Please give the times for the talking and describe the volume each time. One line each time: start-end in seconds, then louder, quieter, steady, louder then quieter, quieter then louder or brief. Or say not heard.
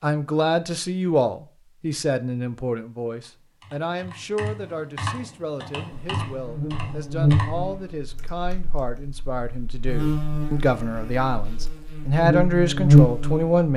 0.0-13.7 quieter then louder.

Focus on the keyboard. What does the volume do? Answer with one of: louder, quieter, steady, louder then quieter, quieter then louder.
louder then quieter.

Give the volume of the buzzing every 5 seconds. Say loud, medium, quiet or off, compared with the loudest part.
off, medium, loud.